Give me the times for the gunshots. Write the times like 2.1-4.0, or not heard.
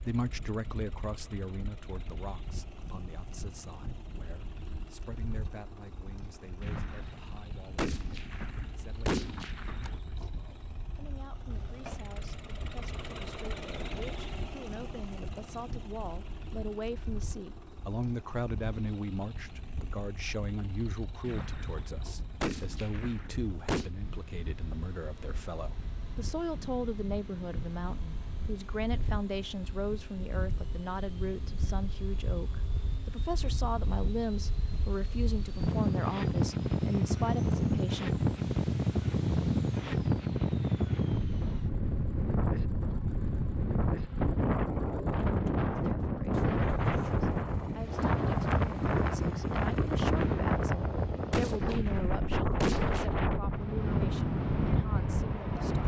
6.6-9.9, 21.2-23.9, 50.1-53.1.